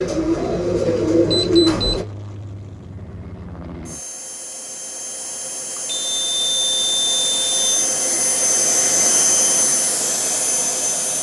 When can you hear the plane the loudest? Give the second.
9 s.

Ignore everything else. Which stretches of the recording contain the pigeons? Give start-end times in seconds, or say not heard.
0.0-2.0.